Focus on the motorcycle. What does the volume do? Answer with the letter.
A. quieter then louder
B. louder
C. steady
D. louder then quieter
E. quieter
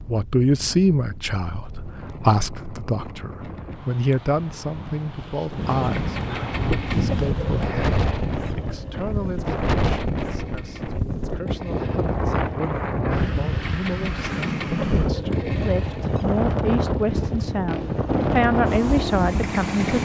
A.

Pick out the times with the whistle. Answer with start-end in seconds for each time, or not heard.
not heard.